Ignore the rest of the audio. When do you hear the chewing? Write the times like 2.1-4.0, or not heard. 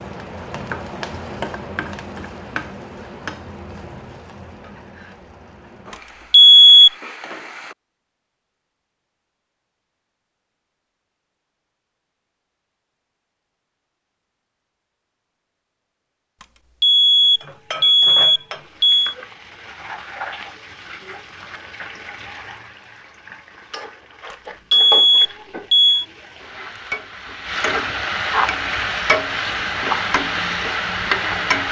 not heard.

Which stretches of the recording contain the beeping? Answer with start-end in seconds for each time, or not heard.
6.3-6.9, 16.8-19.1, 24.7-26.1.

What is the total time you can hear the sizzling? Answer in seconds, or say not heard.
22 s.